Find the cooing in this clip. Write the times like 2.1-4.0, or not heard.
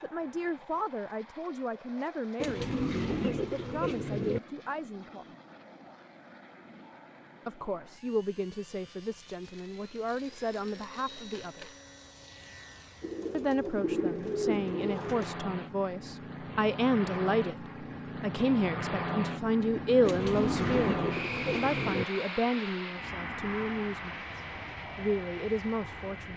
2.4-4.4, 13.0-15.4, 20.1-22.1.